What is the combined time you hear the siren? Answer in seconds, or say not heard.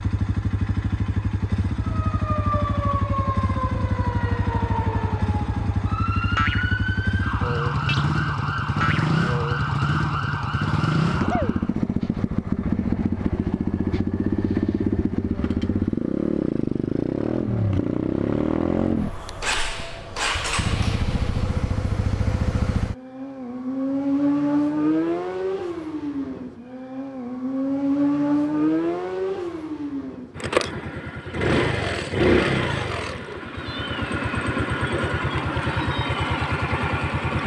10 s.